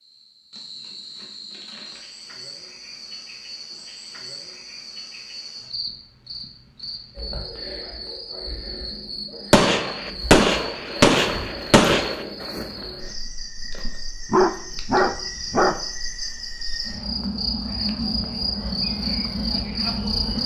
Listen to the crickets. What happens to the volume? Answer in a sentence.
The volume of the crickets goes up.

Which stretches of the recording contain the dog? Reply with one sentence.
The dog can be heard from 14.3 to 15.8 s.